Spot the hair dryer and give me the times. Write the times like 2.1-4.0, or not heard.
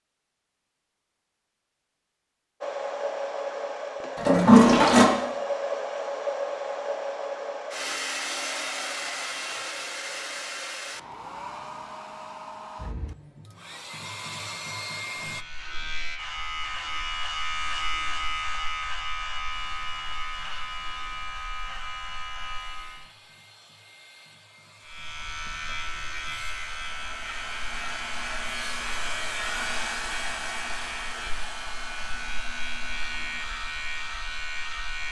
2.6-15.4, 19.5-35.0.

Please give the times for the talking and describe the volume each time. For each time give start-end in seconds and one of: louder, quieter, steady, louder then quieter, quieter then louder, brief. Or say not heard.
not heard.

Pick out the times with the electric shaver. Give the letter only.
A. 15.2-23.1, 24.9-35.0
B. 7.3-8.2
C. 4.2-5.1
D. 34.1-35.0
A.